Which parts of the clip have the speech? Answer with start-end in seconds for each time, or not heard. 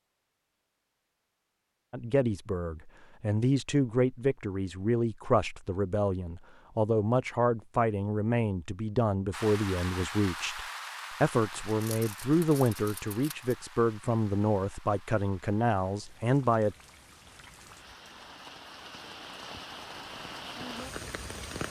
1.9-16.8.